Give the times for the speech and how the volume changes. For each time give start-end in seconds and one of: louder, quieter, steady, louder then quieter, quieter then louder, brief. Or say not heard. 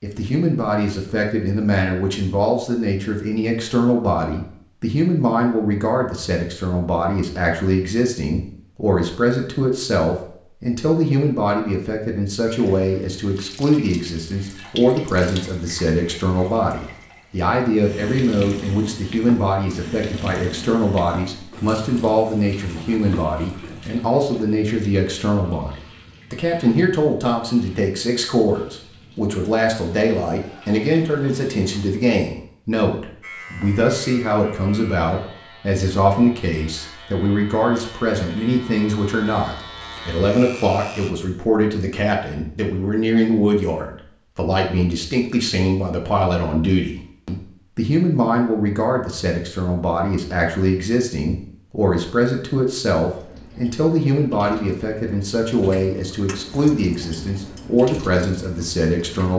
0.0-59.3 steady.